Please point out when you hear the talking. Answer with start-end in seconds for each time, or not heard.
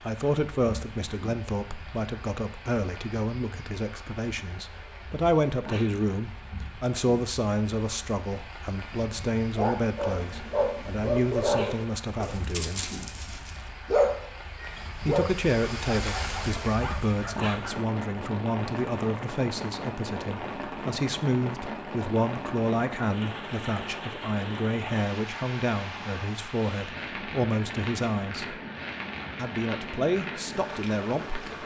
0.0-12.9, 14.9-28.6, 29.4-31.6.